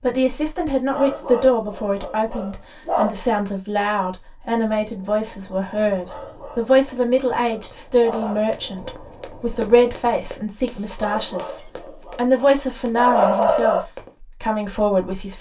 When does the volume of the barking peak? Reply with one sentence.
The loudest moment of the barking is at 13 seconds.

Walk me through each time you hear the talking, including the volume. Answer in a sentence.
The talking can be heard from 0.0 to 15.3 s, at a steady volume.